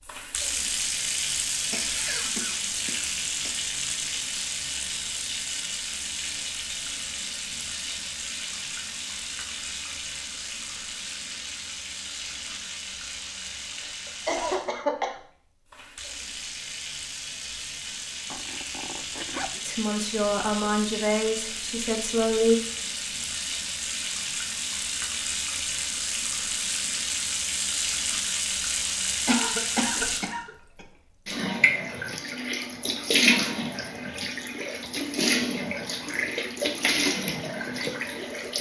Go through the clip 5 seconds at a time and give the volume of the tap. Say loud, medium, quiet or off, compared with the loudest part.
loud, medium, medium, medium, medium, loud, loud, loud.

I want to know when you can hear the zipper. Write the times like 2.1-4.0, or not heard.
18.3-19.6.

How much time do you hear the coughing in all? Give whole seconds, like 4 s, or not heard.
5 s.